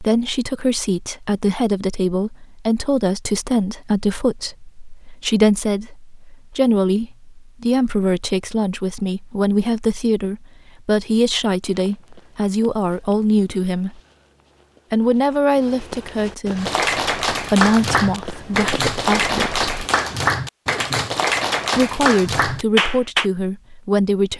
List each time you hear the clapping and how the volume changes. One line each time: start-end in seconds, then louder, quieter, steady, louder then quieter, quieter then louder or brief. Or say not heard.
16.6-23.3 steady.